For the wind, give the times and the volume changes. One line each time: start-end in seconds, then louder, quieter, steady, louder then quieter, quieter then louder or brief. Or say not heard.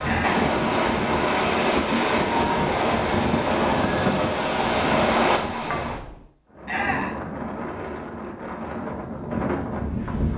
0.0-10.3 quieter.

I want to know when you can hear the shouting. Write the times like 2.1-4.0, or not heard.
0.0-0.5, 6.7-7.2.